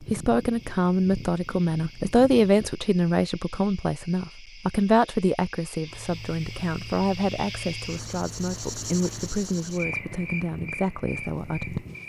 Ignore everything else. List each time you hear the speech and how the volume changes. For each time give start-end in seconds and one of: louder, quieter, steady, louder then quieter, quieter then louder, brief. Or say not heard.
0.0-11.8 quieter.